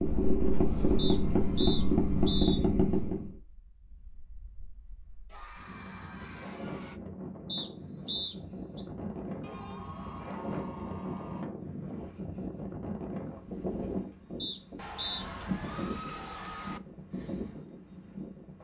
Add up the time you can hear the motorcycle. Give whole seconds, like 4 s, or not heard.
3 s.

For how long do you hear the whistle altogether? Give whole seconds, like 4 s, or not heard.
4 s.